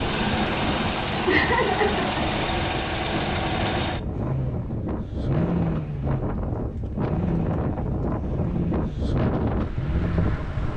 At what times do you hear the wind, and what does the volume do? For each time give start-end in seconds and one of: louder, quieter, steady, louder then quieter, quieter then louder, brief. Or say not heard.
0.2-10.7 louder.